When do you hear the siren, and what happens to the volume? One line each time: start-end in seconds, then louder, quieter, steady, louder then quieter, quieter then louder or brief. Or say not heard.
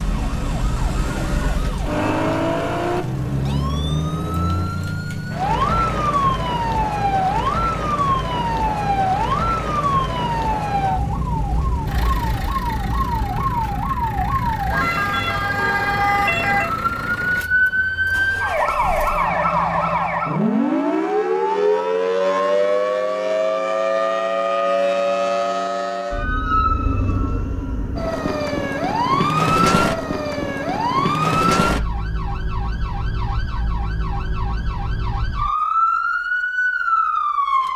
0.0-37.7 steady.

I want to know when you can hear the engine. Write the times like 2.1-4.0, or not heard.
0.0-20.4.